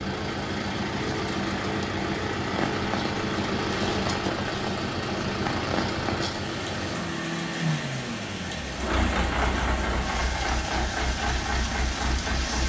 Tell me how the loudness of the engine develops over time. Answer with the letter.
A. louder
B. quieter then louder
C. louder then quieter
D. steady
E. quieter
D.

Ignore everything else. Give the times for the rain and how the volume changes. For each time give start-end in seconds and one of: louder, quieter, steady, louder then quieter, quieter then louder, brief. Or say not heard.
2.4-12.6 steady.